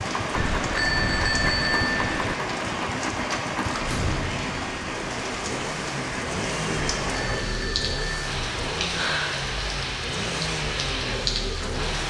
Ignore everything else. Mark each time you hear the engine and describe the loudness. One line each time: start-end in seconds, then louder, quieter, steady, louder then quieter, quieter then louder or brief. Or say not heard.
0.0-12.0 steady.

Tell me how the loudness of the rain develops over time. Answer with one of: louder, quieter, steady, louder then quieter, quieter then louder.
steady.